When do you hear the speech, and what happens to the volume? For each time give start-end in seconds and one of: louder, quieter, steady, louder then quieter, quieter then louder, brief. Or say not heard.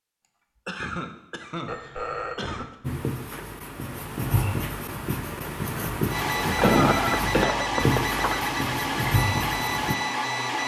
not heard.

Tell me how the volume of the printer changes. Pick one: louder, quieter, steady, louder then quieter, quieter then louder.
steady.